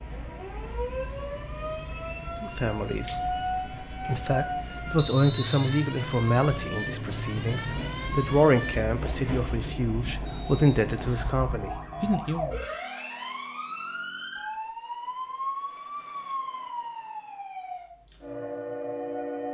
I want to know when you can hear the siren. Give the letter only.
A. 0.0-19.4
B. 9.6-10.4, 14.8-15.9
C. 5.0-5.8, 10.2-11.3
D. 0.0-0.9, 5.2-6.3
A.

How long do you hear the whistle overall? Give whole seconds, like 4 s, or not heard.
2 s.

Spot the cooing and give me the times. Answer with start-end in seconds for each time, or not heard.
not heard.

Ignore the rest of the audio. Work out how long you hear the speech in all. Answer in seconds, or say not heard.
10 s.